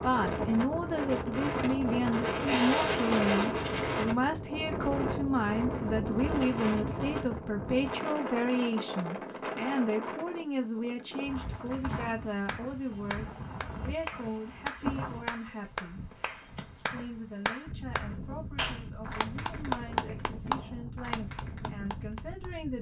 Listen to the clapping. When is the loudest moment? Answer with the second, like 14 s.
20 s.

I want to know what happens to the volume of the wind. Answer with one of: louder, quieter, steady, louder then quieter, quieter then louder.
quieter.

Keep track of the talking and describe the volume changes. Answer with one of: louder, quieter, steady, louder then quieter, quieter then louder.
quieter.